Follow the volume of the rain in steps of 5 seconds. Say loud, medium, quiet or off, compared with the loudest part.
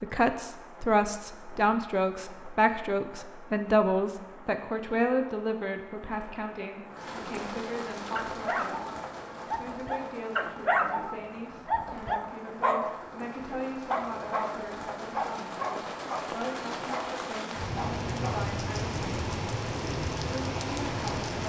quiet, medium, medium, loud, loud.